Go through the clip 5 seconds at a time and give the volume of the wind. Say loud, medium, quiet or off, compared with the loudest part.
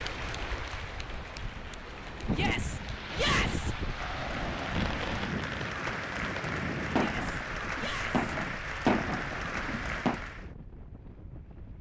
loud, loud, quiet.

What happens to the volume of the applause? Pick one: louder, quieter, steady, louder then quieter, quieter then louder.
louder.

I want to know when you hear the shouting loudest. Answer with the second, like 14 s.
3 s.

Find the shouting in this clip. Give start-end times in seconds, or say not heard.
2.3-3.7, 7.0-8.2.